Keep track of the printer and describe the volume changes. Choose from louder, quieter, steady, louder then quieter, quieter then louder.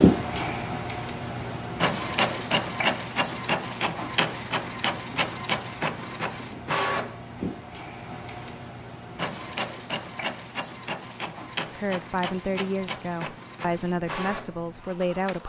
quieter.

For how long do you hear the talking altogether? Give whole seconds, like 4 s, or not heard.
4 s.